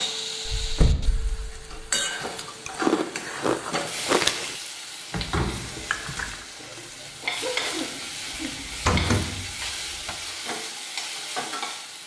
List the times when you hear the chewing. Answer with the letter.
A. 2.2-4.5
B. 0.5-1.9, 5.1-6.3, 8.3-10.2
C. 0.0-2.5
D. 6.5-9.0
A.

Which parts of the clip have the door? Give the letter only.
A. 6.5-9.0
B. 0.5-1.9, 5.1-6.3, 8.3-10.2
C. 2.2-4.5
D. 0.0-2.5
B.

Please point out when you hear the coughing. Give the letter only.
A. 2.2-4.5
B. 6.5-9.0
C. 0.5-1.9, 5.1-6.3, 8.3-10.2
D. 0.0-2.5
B.